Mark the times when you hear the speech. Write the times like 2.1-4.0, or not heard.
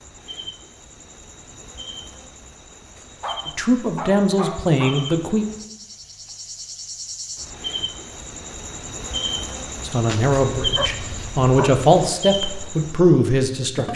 3.5-5.5, 9.8-13.9.